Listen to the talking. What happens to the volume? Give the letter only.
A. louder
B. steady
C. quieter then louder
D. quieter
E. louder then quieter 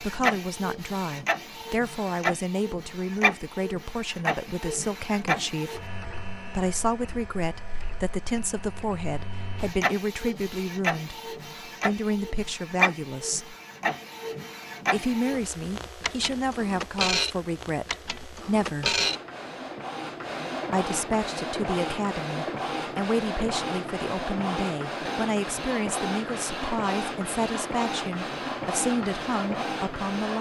B.